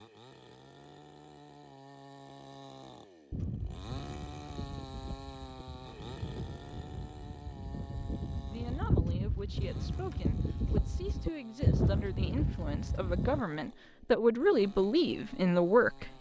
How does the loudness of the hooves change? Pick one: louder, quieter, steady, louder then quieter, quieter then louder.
louder.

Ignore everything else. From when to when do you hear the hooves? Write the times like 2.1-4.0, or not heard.
3.3-13.4.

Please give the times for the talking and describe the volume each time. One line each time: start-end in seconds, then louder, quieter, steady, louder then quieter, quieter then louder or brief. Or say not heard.
8.3-16.1 louder.